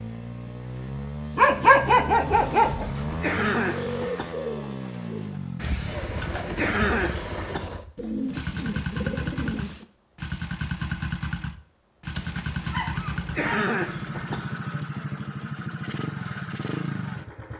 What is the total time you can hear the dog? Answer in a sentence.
You can hear the dog for 4 seconds altogether.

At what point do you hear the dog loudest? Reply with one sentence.
The volume of the dog peaks at 2 seconds.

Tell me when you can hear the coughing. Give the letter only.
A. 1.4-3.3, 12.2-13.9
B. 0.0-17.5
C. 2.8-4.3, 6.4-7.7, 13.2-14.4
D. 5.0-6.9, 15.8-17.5
C.